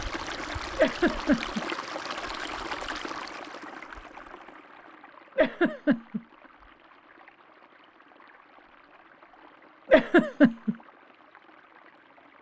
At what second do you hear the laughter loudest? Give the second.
10 s.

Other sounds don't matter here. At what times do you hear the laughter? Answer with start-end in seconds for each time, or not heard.
0.8-1.6, 5.3-6.2, 9.9-10.8.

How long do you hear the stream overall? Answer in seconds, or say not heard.
12 s.